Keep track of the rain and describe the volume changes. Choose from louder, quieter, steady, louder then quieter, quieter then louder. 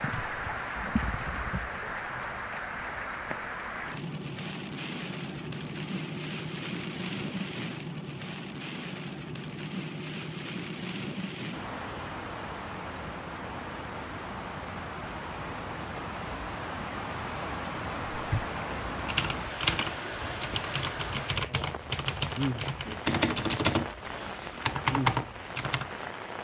steady.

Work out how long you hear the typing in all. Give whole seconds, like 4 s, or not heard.
8 s.